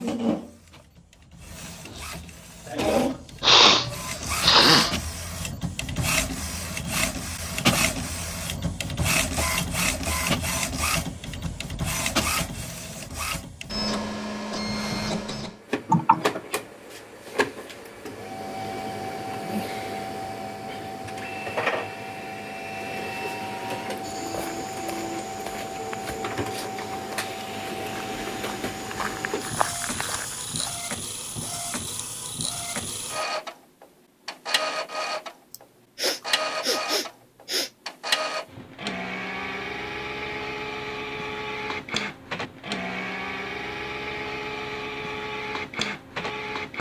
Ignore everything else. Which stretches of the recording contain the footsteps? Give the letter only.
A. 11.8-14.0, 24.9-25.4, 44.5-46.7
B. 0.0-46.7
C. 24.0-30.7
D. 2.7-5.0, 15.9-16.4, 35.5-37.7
C.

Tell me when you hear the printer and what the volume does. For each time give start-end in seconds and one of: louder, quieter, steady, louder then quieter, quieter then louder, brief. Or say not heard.
0.0-46.7 steady.